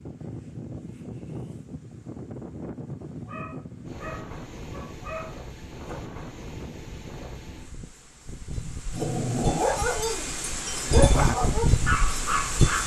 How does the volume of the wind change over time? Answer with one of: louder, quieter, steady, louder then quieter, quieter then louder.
louder.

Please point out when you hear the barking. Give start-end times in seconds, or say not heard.
3.2-6.0, 8.6-12.8.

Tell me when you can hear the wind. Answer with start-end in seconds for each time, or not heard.
0.0-12.8.